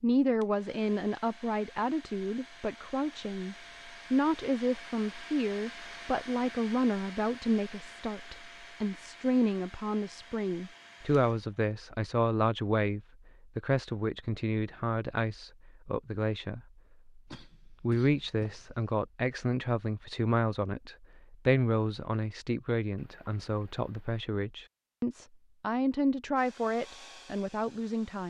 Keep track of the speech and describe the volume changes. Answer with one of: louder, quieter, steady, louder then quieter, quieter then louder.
steady.